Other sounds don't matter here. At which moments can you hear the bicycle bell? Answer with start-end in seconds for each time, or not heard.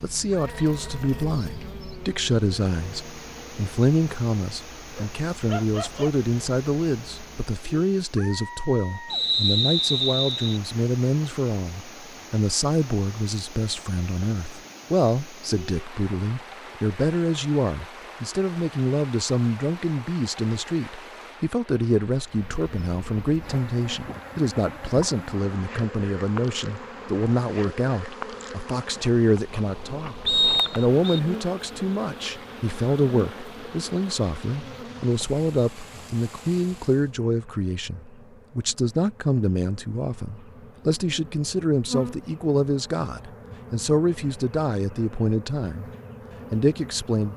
not heard.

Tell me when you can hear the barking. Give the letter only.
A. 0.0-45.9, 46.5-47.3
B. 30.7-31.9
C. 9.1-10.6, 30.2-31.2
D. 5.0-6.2
D.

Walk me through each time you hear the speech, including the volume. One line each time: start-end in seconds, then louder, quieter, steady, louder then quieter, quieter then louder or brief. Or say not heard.
0.0-45.9 steady
46.5-47.3 brief.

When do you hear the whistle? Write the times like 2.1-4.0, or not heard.
9.1-10.6, 30.2-31.2.